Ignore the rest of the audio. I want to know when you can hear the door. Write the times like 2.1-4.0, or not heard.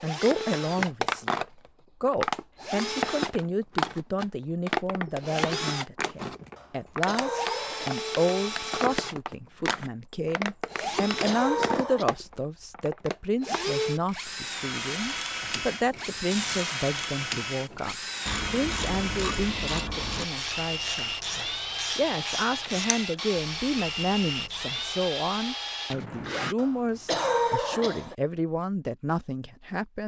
not heard.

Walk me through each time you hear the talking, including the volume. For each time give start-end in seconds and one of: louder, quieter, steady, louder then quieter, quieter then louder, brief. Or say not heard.
0.0-30.0 steady.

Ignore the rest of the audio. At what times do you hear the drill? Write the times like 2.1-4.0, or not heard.
0.0-26.6.